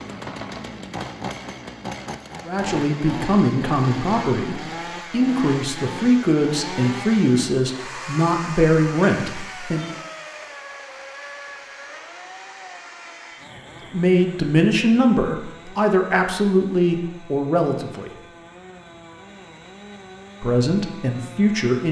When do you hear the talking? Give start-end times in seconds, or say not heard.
2.5-9.8, 13.9-18.1, 20.4-21.8.